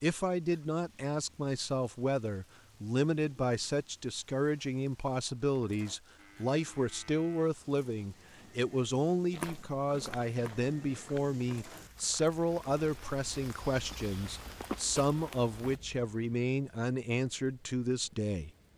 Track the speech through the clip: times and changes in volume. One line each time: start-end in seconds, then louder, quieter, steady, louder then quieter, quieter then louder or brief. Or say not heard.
0.0-18.5 steady.